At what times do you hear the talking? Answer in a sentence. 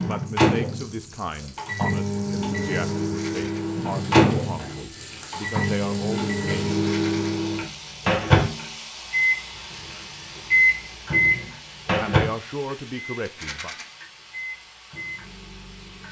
You can hear the talking from 0.0 to 6.8 s and from 12.0 to 13.8 s.